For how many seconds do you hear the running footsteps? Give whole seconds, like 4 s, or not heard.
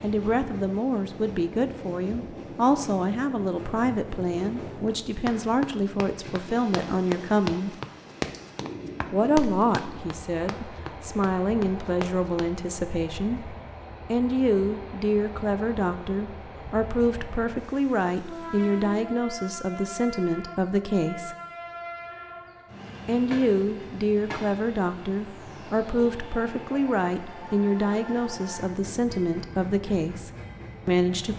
8 s.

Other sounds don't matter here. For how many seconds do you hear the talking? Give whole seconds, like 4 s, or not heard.
28 s.